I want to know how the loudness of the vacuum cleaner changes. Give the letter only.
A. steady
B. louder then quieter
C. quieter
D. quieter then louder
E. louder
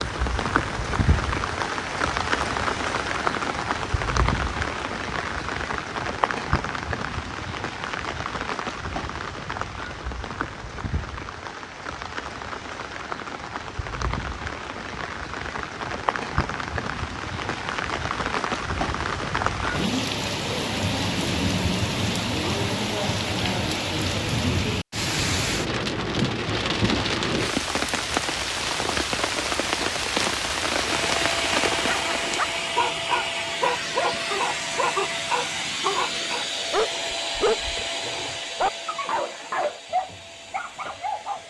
C.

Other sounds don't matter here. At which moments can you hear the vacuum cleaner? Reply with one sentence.
The vacuum cleaner can be heard from 30.8 to 41.4 s.